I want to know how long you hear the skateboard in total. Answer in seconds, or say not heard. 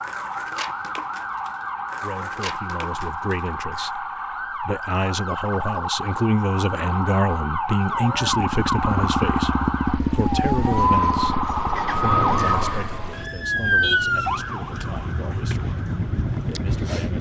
4 s.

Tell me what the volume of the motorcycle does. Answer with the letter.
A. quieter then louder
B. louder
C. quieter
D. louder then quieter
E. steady
A.